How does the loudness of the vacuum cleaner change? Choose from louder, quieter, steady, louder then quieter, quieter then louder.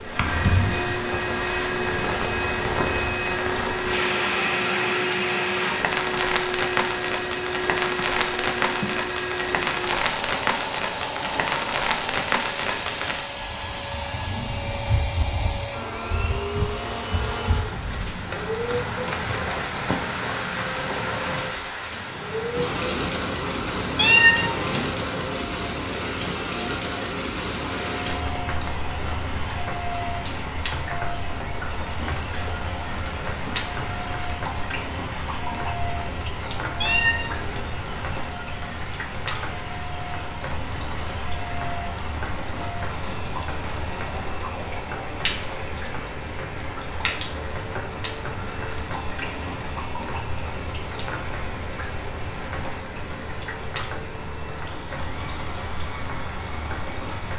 quieter.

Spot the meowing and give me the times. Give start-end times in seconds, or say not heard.
23.9-24.9, 36.8-37.7.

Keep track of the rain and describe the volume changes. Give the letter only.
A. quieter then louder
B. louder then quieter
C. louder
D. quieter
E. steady
D.